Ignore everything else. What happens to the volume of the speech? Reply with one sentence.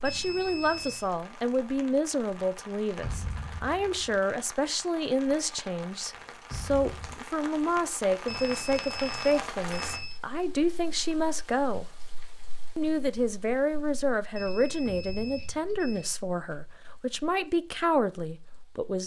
The volume of the speech stays about the same.